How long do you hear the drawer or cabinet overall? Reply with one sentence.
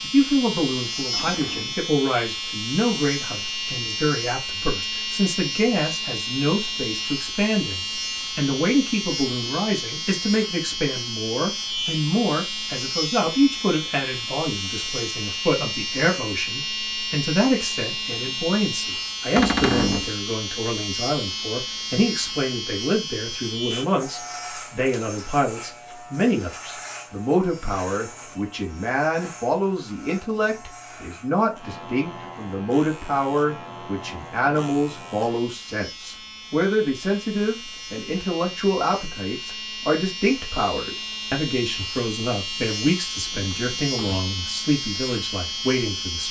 You can hear the drawer or cabinet for 2 seconds altogether.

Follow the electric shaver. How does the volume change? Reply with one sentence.
The volume of the electric shaver goes down, then up.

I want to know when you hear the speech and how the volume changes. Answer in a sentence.
The speech can be heard from 0.0 to 46.2 s, at a steady volume.